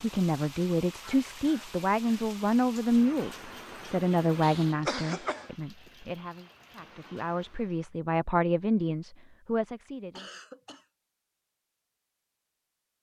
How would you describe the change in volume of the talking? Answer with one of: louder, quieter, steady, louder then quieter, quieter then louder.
quieter then louder.